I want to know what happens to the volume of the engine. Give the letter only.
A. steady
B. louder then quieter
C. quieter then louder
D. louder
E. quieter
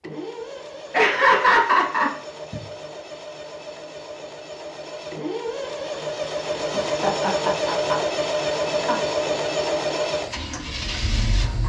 D.